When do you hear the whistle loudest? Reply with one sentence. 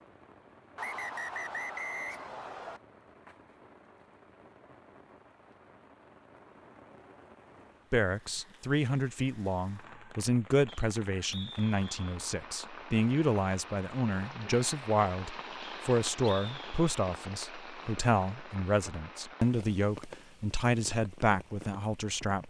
The volume of the whistle peaks at 2 seconds.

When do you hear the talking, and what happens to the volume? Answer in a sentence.
The talking can be heard from 7.9 to 22.4 s, at a steady volume.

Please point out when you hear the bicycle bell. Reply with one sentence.
You can't hear the bicycle bell here.